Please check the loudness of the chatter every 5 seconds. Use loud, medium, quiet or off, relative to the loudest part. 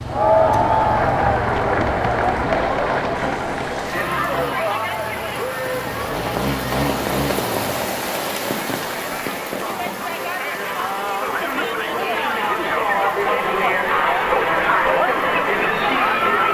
loud, medium, loud, loud.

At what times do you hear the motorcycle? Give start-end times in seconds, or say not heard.
0.0-7.8.